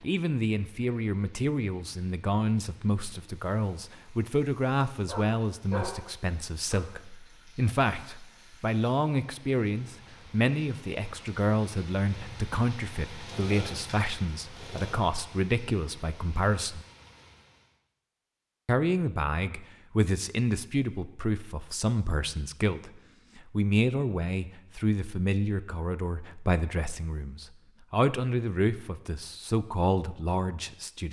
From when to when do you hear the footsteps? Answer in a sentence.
You can't hear the footsteps here.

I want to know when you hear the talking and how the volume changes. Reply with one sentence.
The talking can be heard from 0.0 to 16.9 s, at a steady volume; and from 18.6 to 31.0 s, at a steady volume.